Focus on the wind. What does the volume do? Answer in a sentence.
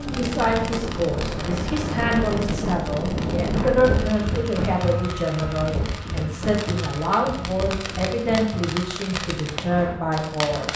The volume of the wind goes down.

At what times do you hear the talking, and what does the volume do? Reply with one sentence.
The talking can be heard from 0.0 to 10.7 s, at a steady volume.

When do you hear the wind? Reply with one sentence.
You can hear the wind from 0.0 to 10.7 s.